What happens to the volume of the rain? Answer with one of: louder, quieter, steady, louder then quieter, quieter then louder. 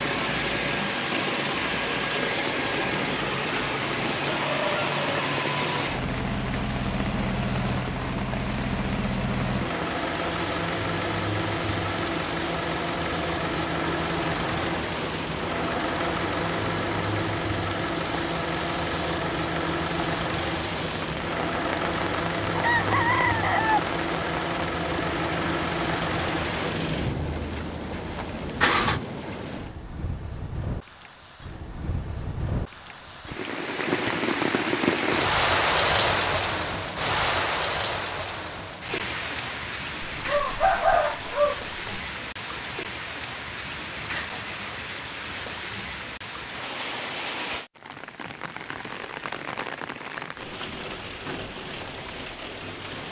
louder then quieter.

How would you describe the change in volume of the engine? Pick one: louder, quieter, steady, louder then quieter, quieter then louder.
steady.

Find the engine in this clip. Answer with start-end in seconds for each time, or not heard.
0.0-29.1.